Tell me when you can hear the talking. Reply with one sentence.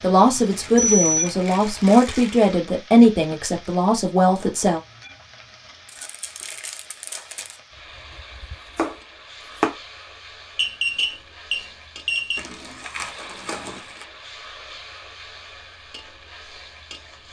You can hear the talking from 0.0 to 4.8 s.